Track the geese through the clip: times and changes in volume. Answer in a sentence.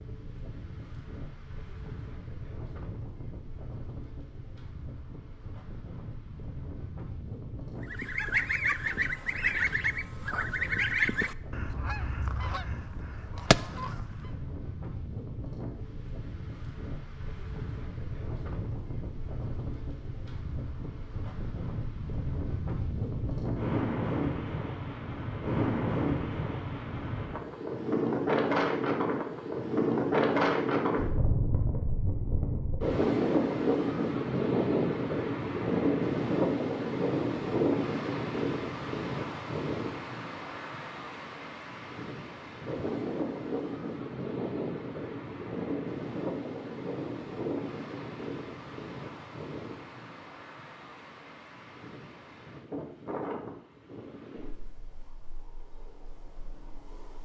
The geese can be heard from 7.8 to 14.4 s, getting quieter then louder.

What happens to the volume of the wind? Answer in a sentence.
The loudness of the wind goes up, then down.